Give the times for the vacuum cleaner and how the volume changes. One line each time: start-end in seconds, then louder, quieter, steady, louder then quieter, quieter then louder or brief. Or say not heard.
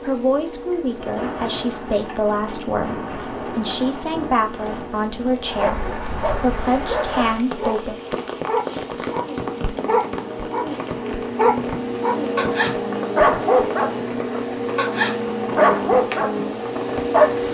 0.0-17.4 louder.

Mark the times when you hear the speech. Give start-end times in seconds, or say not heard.
0.0-8.0.